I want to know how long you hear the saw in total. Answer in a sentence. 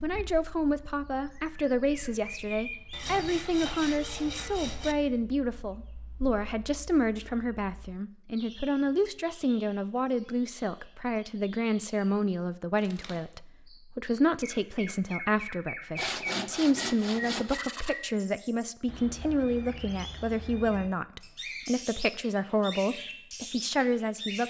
The saw can be heard for 4 seconds in total.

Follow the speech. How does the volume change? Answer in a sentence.
The volume of the speech stays about the same.